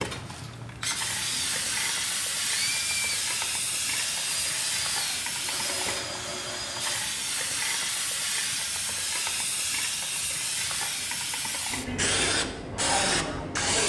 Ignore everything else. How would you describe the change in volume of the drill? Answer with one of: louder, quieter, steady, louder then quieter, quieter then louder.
steady.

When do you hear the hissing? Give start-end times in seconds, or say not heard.
0.0-13.8.